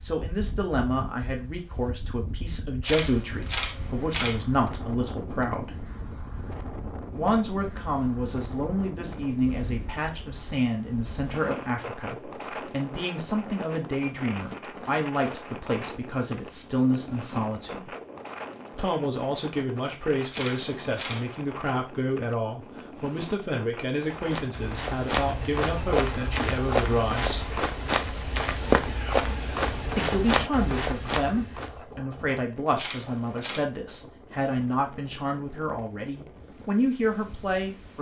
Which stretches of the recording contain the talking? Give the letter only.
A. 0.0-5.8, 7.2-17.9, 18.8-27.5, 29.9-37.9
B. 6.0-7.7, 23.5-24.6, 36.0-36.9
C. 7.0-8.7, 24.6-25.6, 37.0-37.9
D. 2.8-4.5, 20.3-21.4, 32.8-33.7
A.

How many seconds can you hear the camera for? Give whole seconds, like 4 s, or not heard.
4 s.